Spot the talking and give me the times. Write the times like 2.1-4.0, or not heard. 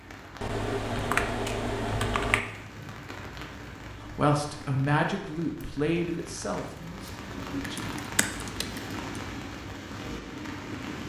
4.0-8.0.